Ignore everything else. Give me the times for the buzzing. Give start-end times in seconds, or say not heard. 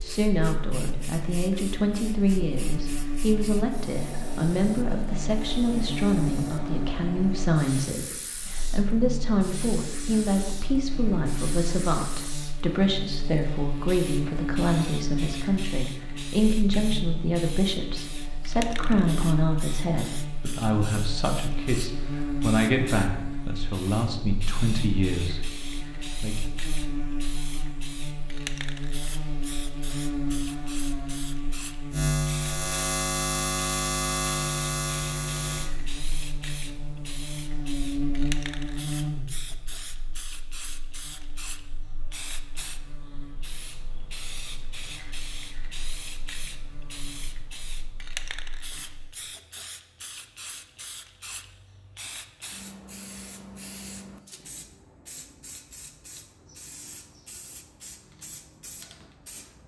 0.0-49.1.